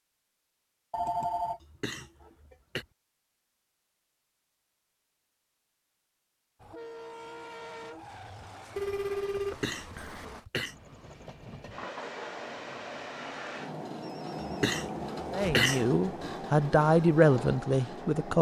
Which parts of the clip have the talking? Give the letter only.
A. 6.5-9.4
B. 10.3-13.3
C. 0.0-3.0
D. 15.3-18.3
D.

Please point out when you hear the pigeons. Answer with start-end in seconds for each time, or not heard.
not heard.